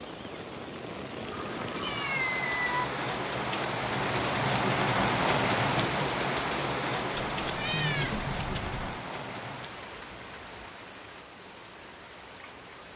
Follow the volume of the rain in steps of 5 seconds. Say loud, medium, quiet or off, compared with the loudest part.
loud, loud, quiet.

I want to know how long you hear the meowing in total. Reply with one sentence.
You can hear the meowing for 3 seconds altogether.